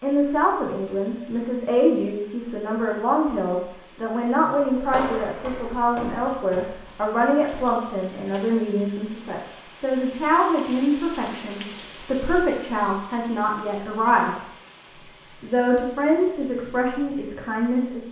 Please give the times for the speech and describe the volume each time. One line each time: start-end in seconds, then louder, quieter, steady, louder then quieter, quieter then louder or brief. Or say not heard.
0.0-14.4 steady
15.4-18.0 brief.